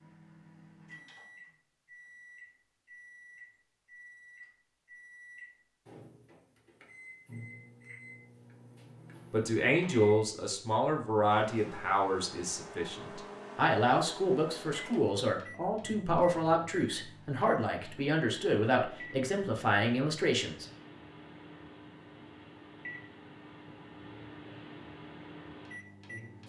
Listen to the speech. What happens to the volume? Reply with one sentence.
The volume of the speech stays about the same.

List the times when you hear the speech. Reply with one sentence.
You can hear the speech from 9.3 to 20.6 s.